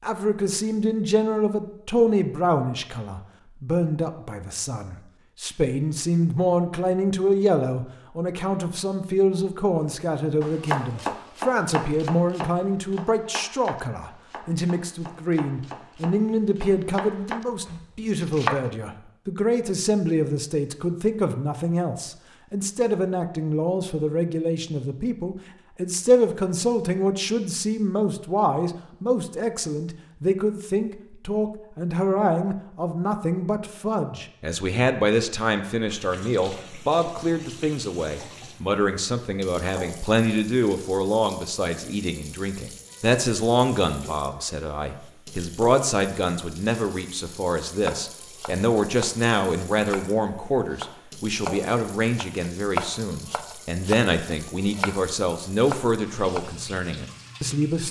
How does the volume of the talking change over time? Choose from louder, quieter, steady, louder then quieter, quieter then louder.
steady.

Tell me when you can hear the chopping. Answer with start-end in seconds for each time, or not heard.
10.4-18.6, 47.8-56.5.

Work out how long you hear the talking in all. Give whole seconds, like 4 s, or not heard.
58 s.